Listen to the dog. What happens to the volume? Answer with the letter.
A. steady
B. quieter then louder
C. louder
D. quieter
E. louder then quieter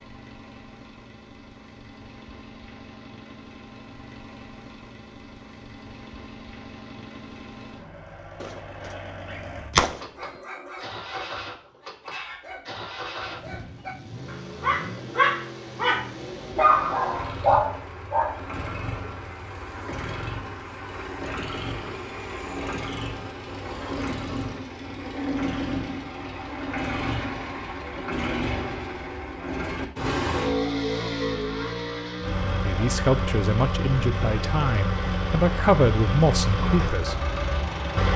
C.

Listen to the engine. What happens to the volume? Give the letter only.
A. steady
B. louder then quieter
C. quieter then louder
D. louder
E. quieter
D.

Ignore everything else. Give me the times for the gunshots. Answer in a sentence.
The gunshots can be heard from 8.4 to 10.4 s.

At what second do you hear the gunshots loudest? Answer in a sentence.
The volume of the gunshots peaks at 10 seconds.